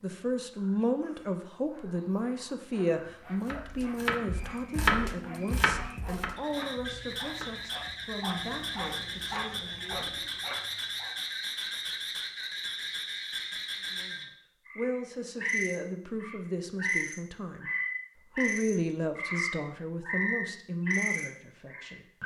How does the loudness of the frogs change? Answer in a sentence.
The volume of the frogs goes up.